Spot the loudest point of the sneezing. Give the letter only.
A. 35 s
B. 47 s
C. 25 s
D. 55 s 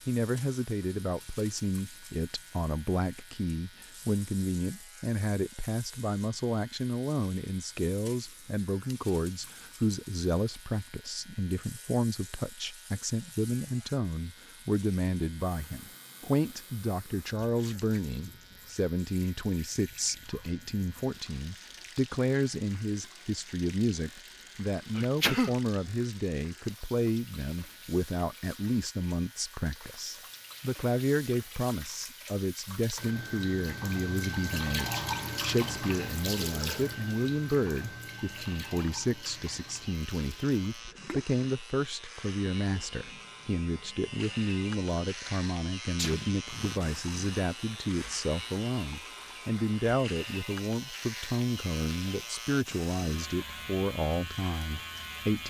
C.